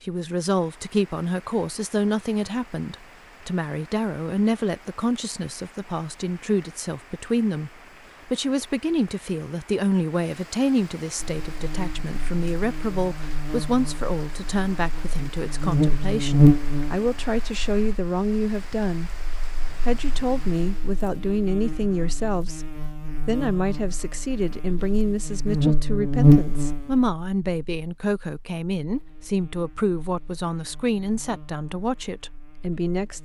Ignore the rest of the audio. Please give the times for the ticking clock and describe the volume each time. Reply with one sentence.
You can't hear the ticking clock here.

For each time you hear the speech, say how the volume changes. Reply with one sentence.
The speech can be heard from 0.0 to 19.2 s, at a steady volume; and from 19.9 to 33.2 s, at a steady volume.